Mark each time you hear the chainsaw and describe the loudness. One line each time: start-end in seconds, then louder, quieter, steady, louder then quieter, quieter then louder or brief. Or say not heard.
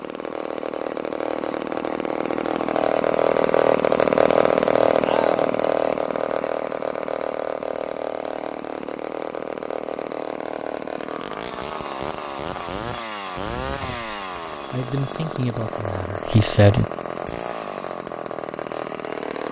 0.0-19.4 quieter.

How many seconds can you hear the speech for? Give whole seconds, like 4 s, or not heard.
3 s.